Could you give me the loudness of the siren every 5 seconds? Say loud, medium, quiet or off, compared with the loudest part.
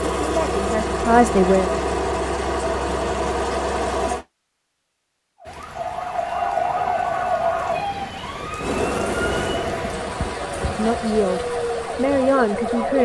off, loud, loud.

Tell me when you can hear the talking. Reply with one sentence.
You can hear the talking from 0.2 to 1.8 s and from 10.7 to 12.9 s.